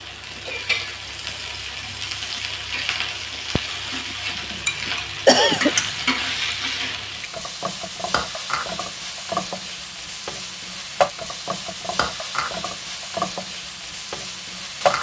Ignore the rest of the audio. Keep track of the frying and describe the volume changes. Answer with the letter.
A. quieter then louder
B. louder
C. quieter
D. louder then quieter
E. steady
E.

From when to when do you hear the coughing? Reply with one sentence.
You can hear the coughing from 4.5 to 5.8 s.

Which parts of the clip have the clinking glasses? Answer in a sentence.
You can hear the clinking glasses from 4.3 to 6.5 s.